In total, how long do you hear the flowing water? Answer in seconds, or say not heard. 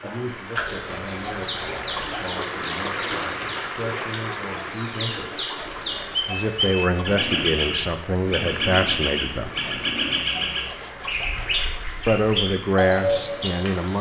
14 s.